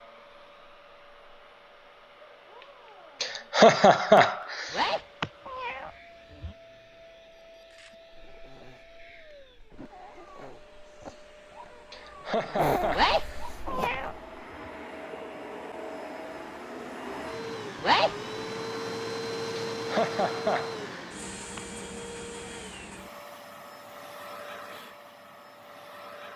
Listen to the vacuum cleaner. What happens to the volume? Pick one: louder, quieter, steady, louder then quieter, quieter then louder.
louder then quieter.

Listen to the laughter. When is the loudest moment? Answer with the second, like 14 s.
4 s.